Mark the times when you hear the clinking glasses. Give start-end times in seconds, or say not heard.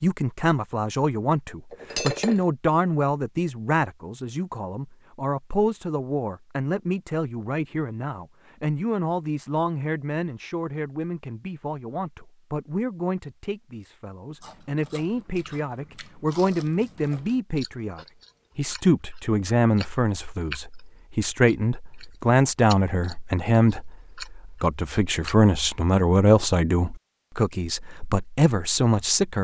1.7-2.5.